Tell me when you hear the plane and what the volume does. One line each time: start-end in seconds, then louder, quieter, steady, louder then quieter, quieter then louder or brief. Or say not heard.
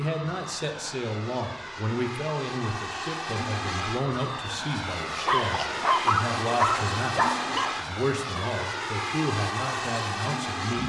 0.0-10.8 louder.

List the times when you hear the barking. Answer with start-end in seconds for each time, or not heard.
5.2-7.8.